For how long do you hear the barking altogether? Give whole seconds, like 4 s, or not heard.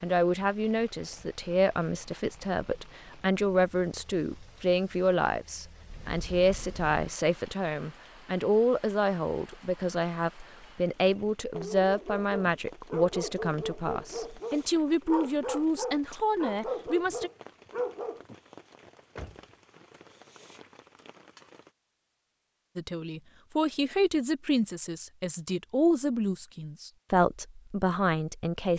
7 s.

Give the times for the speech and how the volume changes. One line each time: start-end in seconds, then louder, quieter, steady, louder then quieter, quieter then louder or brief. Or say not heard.
0.0-17.3 steady
22.8-28.7 steady.